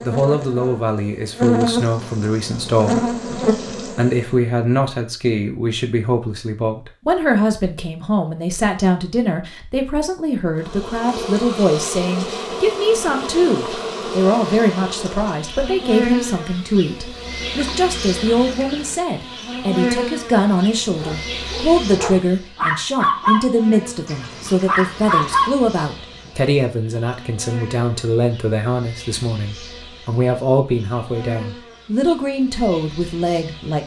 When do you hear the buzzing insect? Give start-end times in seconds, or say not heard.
0.0-4.3, 10.6-33.8.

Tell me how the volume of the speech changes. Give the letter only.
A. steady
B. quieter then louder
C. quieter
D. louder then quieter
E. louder
A.